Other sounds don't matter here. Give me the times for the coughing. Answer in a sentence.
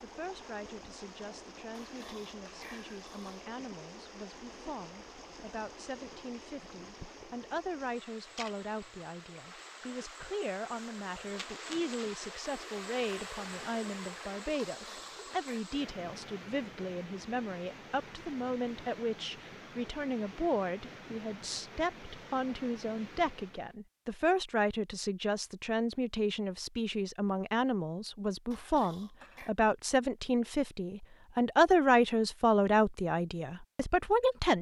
The coughing can't be heard in this clip.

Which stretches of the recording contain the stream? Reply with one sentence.
The stream can be heard from 0.0 to 23.8 s.